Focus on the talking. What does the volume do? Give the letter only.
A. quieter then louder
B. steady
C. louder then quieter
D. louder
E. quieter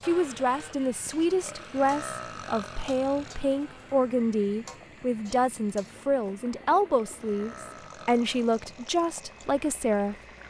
B.